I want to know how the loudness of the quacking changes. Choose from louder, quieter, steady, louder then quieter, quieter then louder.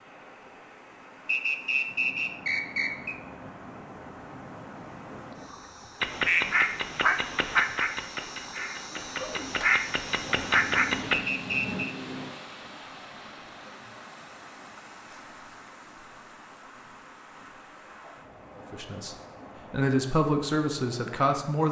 quieter then louder.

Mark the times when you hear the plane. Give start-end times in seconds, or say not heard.
10.1-12.3.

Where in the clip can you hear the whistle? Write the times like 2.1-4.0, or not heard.
1.2-3.1, 11.1-11.9.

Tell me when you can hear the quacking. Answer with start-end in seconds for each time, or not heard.
6.0-11.2.